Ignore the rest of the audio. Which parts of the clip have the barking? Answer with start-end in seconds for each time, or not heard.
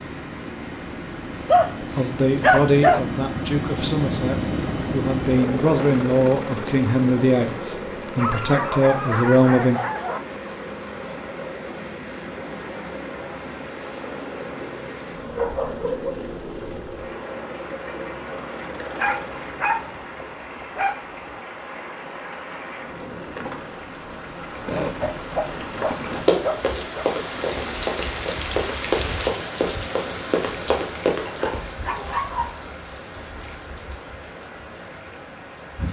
1.4-3.0, 8.2-10.2, 14.4-16.1, 18.9-21.0, 24.6-27.1, 31.2-32.5.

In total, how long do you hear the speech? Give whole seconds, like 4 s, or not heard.
8 s.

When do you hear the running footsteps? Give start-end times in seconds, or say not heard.
26.2-31.6.